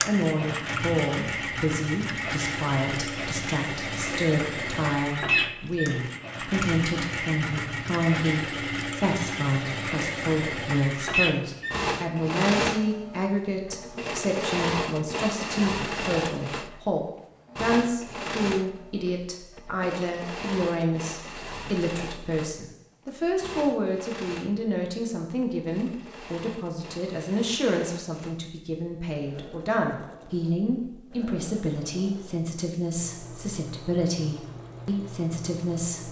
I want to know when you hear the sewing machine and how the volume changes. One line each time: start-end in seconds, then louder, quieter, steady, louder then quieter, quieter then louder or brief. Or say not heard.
0.0-36.0 quieter.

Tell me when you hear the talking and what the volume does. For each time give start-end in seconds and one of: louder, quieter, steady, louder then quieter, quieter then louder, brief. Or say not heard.
0.1-36.0 steady.